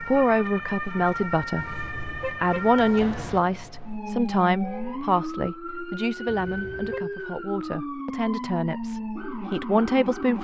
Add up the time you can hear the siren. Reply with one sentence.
The siren can be heard for 10 seconds in total.